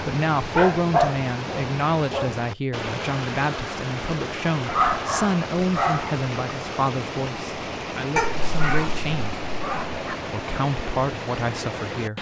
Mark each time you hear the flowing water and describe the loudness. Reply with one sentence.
You can hear the flowing water from 0.0 to 12.1 s, at a steady volume.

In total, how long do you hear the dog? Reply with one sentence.
You can hear the dog for 5 seconds altogether.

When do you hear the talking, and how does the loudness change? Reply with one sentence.
The talking can be heard from 0.0 to 9.4 s, getting quieter; and briefly from 10.2 to 12.1 s.